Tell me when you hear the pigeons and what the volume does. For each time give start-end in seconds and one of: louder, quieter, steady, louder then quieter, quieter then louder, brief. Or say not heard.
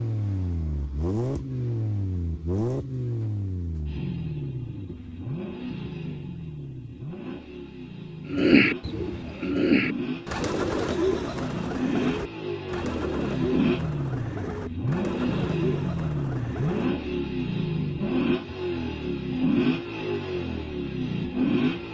8.2-17.1 quieter.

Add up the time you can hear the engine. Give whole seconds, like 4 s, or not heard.
22 s.